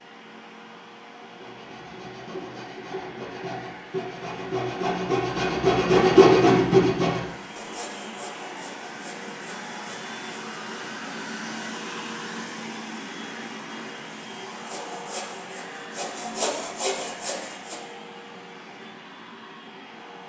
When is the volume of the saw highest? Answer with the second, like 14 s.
6 s.